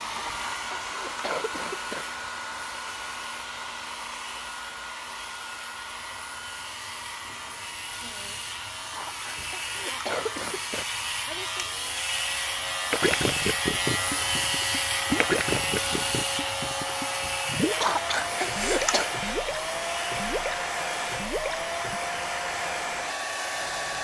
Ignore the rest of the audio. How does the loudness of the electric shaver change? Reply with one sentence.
The volume of the electric shaver goes up, then down.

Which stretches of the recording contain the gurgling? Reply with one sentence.
You can hear the gurgling from 12.9 to 22.0 s.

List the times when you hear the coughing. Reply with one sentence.
The coughing can be heard from 0.0 to 2.0 s, from 8.8 to 10.8 s and from 17.7 to 19.1 s.